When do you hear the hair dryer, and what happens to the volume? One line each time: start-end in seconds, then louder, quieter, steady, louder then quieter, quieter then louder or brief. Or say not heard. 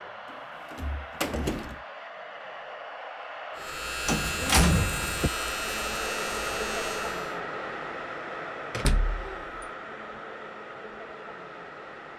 0.0-12.1 louder then quieter.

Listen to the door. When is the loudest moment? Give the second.
5 s.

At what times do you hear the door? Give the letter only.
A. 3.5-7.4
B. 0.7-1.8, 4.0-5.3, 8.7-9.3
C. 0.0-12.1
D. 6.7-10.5
B.